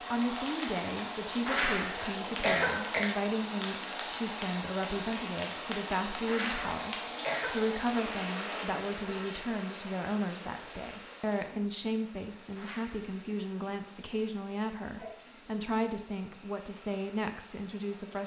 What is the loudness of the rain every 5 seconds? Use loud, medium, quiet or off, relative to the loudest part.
loud, loud, quiet, quiet.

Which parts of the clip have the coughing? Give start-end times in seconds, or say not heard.
1.4-3.0, 6.2-7.7, 12.6-13.2.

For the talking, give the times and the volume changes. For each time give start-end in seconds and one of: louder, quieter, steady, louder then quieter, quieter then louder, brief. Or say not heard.
0.0-18.2 steady.